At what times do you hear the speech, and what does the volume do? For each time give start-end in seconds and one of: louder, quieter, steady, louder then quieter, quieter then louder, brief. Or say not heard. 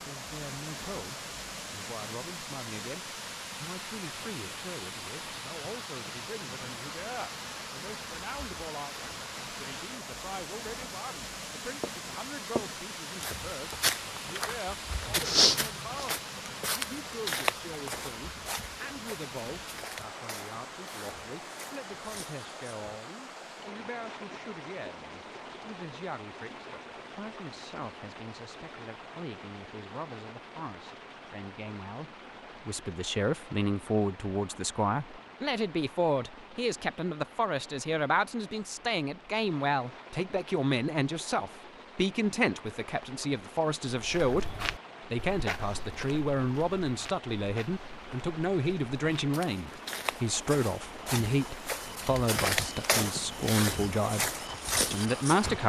0.1-44.5 louder
45.1-55.6 steady.